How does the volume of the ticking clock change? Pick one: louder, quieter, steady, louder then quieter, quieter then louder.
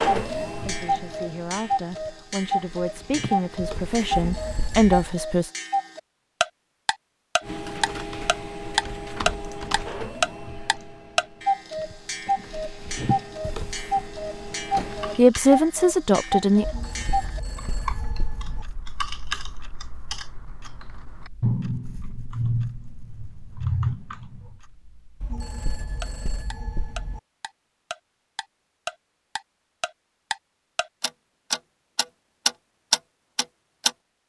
quieter then louder.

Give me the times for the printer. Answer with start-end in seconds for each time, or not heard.
0.0-4.3, 7.4-15.2.